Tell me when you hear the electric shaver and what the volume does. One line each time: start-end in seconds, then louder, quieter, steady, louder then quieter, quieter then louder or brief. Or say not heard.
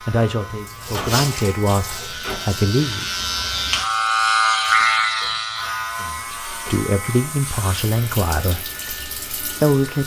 0.0-10.0 louder then quieter.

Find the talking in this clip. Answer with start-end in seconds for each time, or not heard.
0.1-3.1, 6.0-10.0.